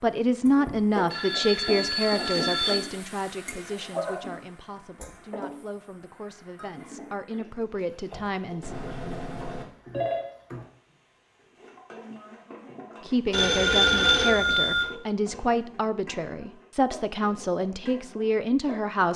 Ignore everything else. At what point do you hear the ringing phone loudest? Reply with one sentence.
The volume of the ringing phone peaks at 14 seconds.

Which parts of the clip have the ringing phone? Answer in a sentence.
The ringing phone can be heard from 1.1 to 2.8 s, from 8.6 to 10.2 s and from 13.3 to 14.8 s.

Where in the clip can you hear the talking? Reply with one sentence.
You can hear the talking from 0.0 to 8.7 s and from 13.1 to 19.1 s.